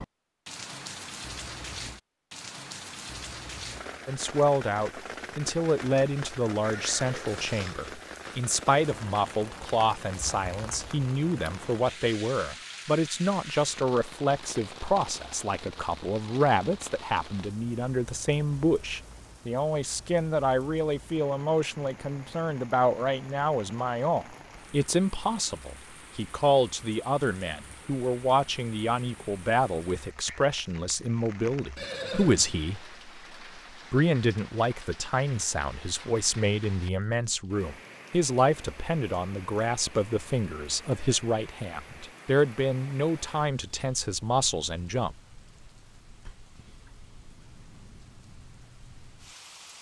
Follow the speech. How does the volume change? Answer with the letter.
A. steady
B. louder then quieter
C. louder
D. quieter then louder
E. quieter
A.